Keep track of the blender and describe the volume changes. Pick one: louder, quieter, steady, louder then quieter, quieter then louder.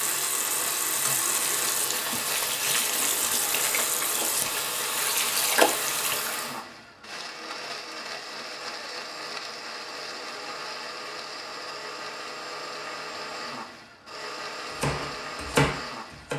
steady.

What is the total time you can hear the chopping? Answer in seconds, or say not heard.
2 s.